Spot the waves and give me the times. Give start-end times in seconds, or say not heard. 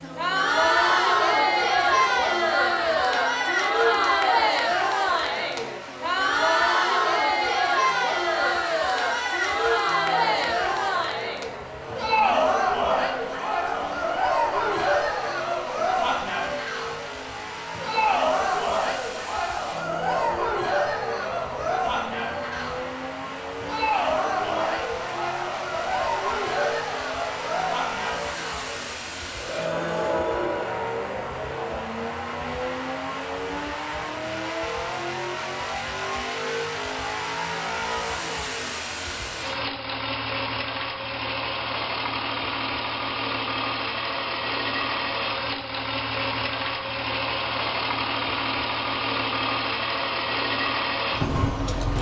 not heard.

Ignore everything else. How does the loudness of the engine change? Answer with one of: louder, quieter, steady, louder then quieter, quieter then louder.
louder.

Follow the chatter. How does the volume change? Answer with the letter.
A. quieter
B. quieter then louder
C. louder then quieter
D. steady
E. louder
A.